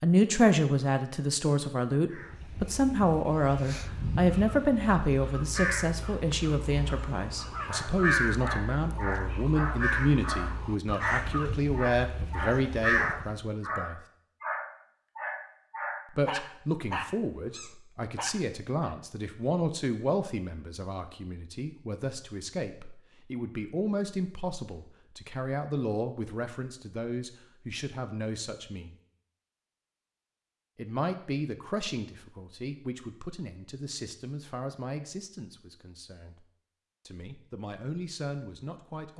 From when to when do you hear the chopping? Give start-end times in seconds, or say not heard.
not heard.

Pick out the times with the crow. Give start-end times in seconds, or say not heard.
2.1-13.4.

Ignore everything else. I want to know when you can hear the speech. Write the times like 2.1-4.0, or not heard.
0.0-14.0, 16.1-28.9, 30.8-36.5, 37.0-39.1.